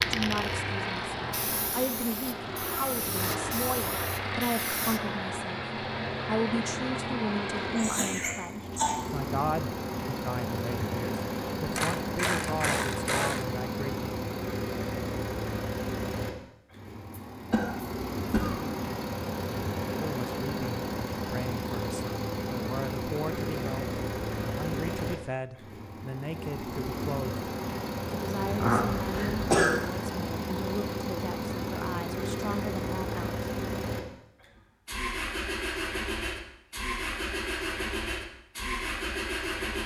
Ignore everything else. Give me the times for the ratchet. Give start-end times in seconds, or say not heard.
11.7-13.4.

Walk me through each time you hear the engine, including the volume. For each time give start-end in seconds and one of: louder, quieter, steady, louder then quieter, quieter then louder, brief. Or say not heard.
0.0-39.8 steady.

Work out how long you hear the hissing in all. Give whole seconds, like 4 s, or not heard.
5 s.